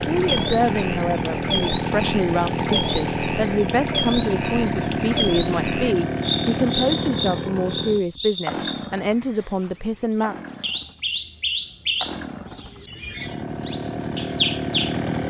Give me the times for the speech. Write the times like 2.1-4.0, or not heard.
0.0-10.3.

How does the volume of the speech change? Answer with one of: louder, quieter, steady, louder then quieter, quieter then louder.
steady.